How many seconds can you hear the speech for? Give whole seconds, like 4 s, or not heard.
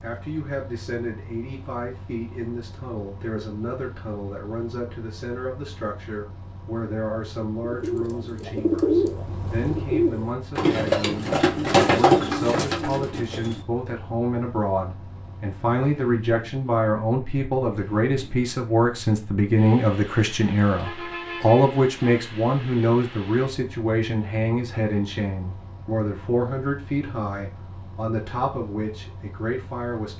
30 s.